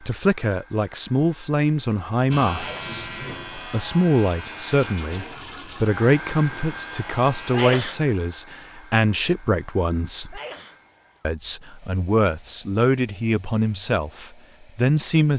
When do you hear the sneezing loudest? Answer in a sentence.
The volume of the sneezing peaks at 8 seconds.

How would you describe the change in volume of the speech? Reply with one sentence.
The loudness of the speech stays about the same.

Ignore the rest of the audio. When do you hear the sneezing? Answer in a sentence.
The sneezing can be heard from 2.5 to 3.0 s, from 7.5 to 8.0 s and from 10.3 to 10.8 s.